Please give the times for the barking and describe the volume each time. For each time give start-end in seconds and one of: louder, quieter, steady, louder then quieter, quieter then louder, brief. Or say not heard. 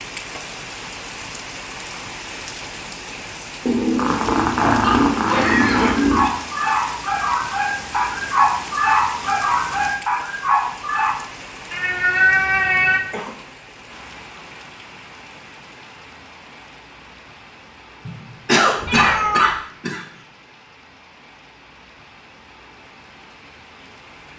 4.5-11.2 louder.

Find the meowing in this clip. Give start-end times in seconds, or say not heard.
3.6-6.3, 11.7-13.0, 18.9-19.4.